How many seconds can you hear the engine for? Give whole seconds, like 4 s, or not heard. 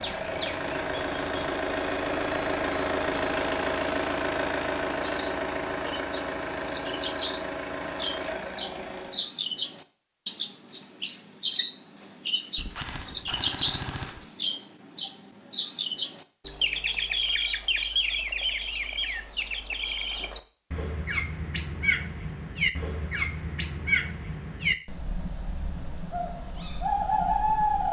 9 s.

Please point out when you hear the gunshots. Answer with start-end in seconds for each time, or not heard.
12.6-14.3.